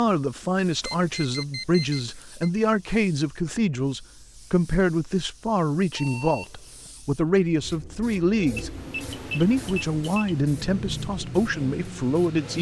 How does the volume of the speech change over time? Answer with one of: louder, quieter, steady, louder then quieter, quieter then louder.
steady.